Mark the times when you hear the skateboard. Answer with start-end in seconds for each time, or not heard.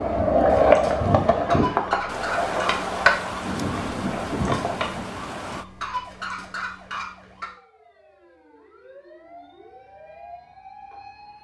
0.0-4.9.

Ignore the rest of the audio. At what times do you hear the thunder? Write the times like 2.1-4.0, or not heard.
2.0-5.7.